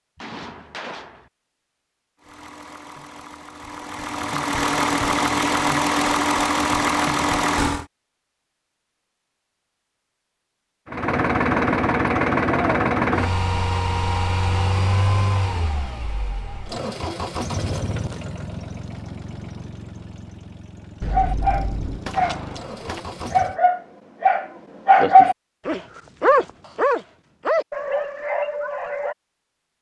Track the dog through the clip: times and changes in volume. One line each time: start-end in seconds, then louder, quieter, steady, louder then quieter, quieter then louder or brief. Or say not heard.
21.1-29.1 louder then quieter.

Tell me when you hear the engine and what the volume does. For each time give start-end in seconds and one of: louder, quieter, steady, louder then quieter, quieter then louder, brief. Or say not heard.
2.2-7.8 louder
10.8-23.6 quieter.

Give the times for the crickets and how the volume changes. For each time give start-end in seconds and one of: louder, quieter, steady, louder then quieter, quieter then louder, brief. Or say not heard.
not heard.